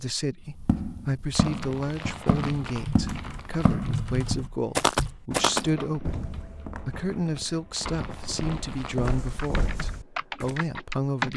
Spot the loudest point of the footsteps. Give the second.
5 s.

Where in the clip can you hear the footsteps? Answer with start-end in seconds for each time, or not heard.
0.6-10.6.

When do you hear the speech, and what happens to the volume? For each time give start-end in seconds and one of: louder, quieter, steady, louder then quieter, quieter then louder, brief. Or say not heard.
0.0-11.3 steady.